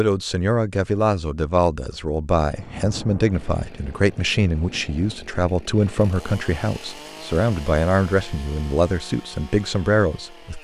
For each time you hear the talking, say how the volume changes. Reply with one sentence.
You can hear the talking from 0.0 to 10.5 s, at a steady volume.